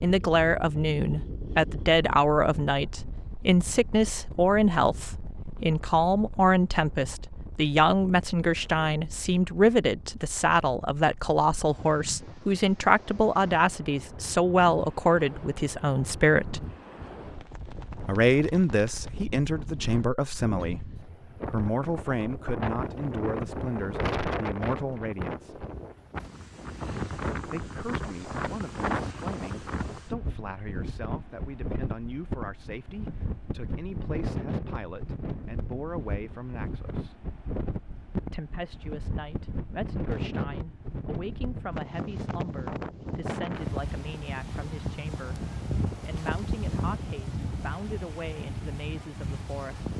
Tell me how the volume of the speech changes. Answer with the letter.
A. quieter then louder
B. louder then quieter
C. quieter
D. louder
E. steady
C.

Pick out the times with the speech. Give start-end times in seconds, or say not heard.
0.0-16.6, 18.1-25.6, 27.4-37.2, 38.1-49.9.